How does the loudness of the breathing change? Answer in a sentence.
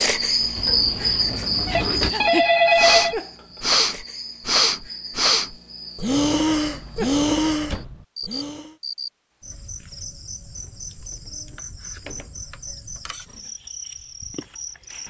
The loudness of the breathing goes up.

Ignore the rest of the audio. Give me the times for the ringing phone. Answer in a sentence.
You can hear the ringing phone from 1.7 to 3.1 s.